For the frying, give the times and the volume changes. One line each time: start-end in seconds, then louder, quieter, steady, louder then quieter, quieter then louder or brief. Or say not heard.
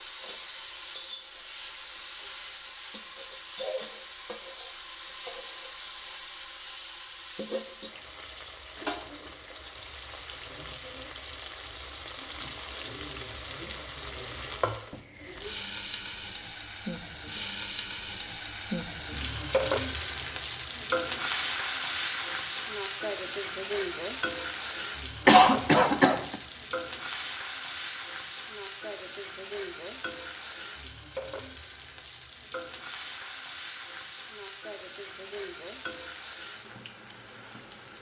0.0-37.9 louder then quieter.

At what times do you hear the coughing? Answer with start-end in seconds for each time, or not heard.
25.2-26.4.